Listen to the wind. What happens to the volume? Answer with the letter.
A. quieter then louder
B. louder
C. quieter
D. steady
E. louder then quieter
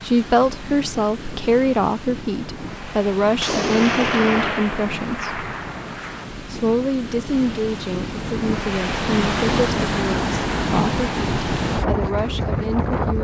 B.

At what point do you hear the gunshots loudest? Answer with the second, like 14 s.
4 s.